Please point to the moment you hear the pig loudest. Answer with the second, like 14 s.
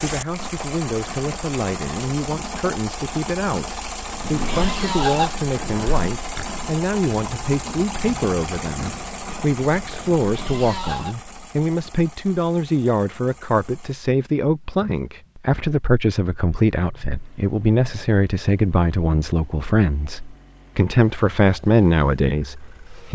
5 s.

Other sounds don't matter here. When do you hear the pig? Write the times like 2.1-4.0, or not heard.
4.2-11.2.